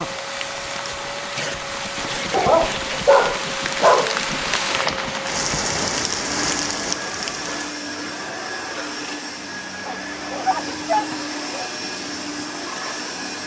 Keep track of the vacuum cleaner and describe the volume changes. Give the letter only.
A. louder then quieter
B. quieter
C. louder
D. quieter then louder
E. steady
E.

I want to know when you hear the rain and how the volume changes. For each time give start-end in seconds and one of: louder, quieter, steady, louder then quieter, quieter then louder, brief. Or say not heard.
0.0-7.8 louder.